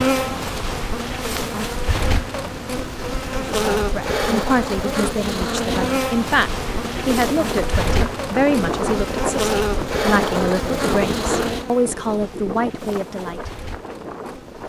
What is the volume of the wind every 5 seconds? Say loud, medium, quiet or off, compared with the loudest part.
off, loud, loud.